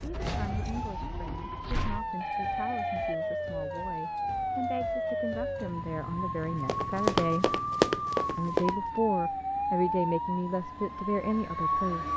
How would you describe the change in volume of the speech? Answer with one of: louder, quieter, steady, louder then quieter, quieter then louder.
louder.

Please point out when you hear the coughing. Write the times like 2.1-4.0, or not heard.
not heard.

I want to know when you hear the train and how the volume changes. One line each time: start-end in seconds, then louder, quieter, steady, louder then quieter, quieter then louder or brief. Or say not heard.
not heard.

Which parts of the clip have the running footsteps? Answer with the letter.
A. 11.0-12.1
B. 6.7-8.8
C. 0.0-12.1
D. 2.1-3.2
B.